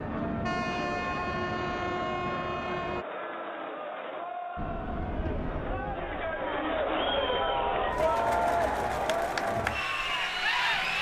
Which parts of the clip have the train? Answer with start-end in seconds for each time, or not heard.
0.0-3.0, 4.5-8.1.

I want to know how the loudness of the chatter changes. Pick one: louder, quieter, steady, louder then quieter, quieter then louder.
louder.